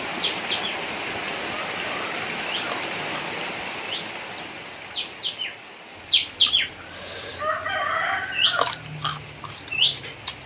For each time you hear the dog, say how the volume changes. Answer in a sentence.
You can't hear the dog here.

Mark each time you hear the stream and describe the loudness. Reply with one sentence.
The stream can be heard from 0.0 to 10.4 s, getting quieter.